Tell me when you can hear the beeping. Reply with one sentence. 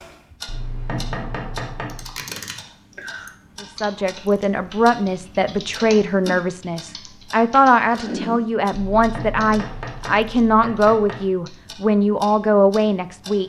You can't hear the beeping here.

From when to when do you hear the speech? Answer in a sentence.
You can hear the speech from 3.6 to 13.4 s.